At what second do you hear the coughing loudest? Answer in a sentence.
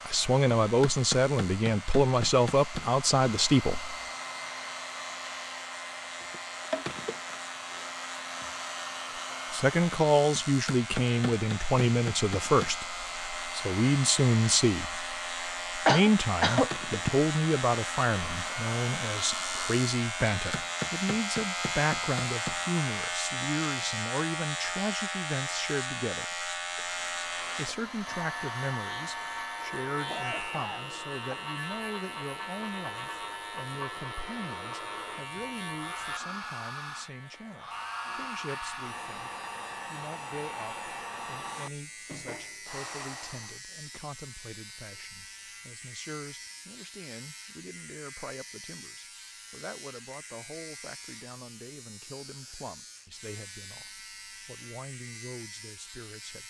The loudest moment of the coughing is at 16 seconds.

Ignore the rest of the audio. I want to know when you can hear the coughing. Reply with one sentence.
The coughing can be heard from 15.8 to 17.1 s and from 30.1 to 31.4 s.